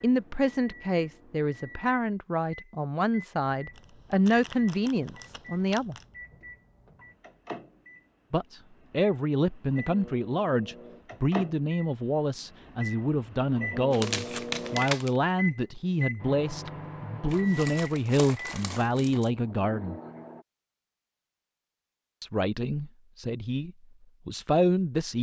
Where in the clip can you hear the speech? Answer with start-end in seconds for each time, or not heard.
0.0-6.0, 8.3-20.0, 22.2-25.1.